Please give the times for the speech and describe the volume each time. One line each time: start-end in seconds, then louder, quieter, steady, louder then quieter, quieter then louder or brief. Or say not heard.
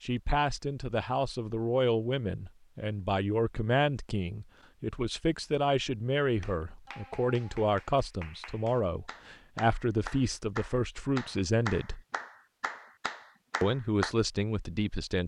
0.0-12.0 steady
13.6-15.2 brief.